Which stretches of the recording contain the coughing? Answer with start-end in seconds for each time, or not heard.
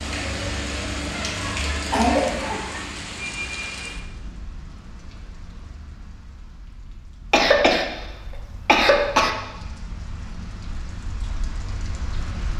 1.1-2.9, 7.3-7.8, 8.7-9.3.